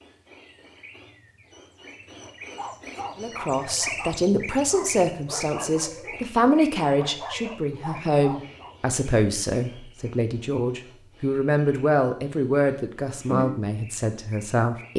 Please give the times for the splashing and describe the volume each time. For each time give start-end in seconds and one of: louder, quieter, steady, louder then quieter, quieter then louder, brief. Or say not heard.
not heard.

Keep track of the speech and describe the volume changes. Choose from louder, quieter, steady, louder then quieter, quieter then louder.
steady.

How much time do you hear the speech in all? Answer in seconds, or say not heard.
12 s.